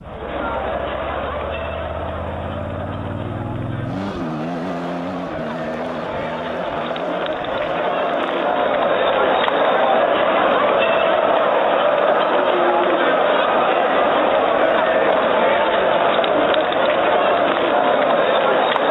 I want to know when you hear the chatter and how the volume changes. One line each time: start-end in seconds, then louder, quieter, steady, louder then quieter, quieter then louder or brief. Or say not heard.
0.0-18.8 louder.